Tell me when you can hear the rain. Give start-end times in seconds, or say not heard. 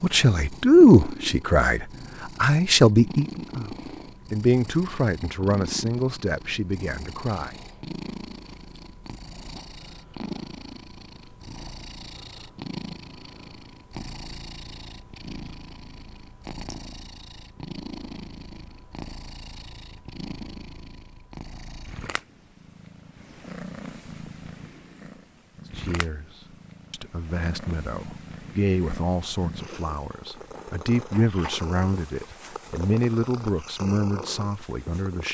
not heard.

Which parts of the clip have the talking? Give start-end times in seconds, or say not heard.
0.0-7.5, 25.8-26.2, 26.9-35.2.